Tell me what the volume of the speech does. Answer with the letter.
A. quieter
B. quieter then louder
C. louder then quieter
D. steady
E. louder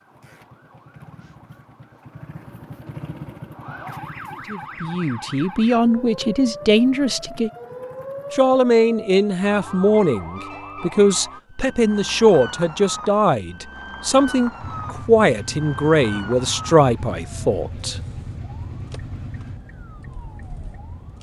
D.